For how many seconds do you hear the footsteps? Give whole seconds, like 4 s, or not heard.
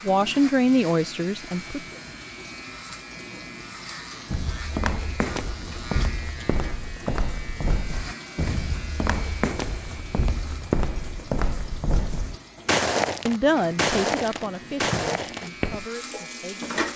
12 s.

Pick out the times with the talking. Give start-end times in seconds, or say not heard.
0.0-1.8, 13.2-16.7.